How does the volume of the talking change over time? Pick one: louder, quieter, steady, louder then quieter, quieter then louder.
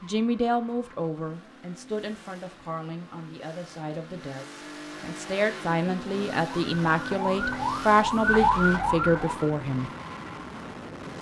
quieter then louder.